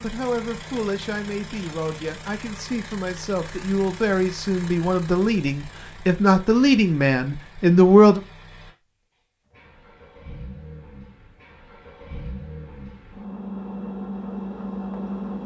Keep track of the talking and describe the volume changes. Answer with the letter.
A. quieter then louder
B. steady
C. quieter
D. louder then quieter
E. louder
E.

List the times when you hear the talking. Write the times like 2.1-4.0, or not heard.
0.0-8.2.